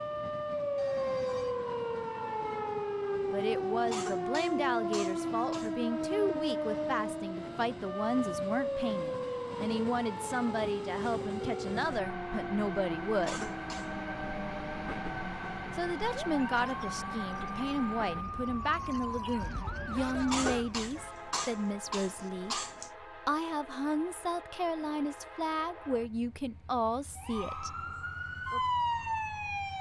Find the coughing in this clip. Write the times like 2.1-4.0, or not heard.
3.9-5.8, 13.2-14.1, 20.2-22.9.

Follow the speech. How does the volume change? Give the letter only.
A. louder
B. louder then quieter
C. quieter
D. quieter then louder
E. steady
E.